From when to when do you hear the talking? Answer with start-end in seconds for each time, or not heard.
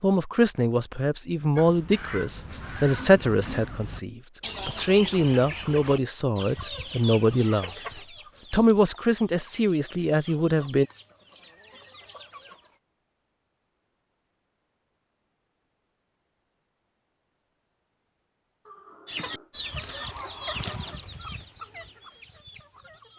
0.0-7.7, 8.5-10.8.